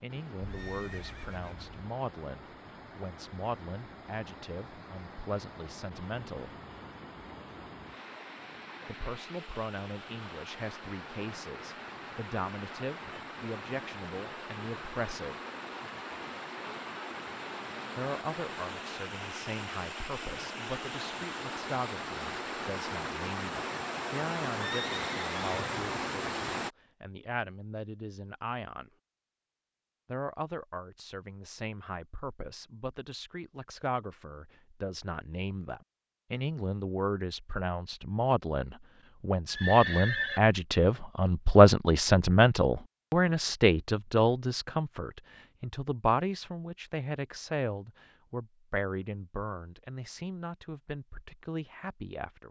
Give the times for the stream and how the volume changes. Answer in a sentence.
The stream can be heard from 0.0 to 26.7 s, getting louder.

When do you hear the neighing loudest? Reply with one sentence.
The loudest moment of the neighing is at 40 seconds.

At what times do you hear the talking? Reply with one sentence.
You can hear the talking from 0.0 to 6.5 s, from 8.8 to 15.4 s, from 17.9 to 28.9 s and from 30.1 to 52.4 s.